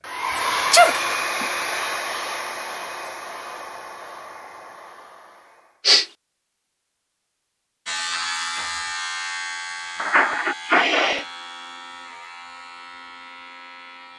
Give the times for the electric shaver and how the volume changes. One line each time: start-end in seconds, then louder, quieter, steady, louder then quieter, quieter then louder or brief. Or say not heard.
7.8-14.1 quieter.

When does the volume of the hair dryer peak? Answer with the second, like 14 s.
1 s.